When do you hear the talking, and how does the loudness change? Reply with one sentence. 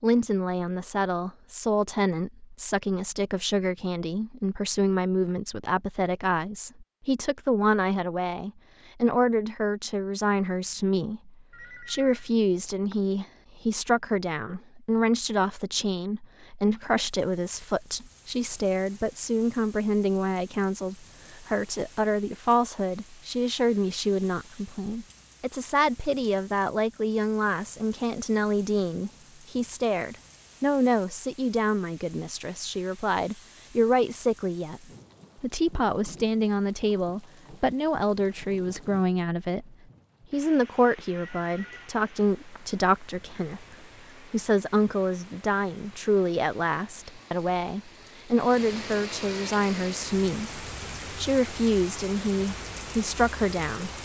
You can hear the talking from 0.0 to 34.8 s, at a steady volume; and from 35.4 to 54.0 s, at a steady volume.